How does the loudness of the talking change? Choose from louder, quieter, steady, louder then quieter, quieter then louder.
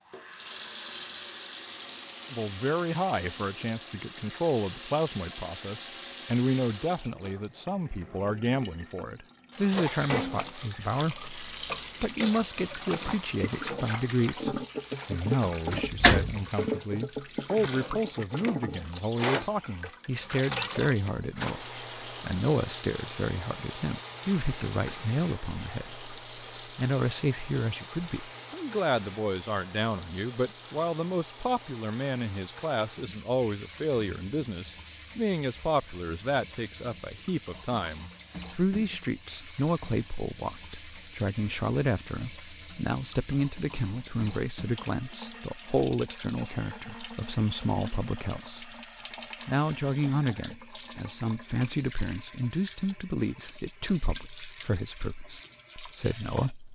steady.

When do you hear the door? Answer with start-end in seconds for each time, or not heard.
15.7-16.4.